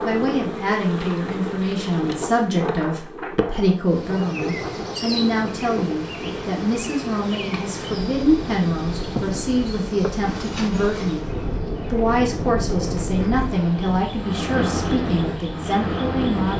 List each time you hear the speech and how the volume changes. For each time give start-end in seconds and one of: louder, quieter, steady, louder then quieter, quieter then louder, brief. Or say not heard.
0.0-16.5 steady.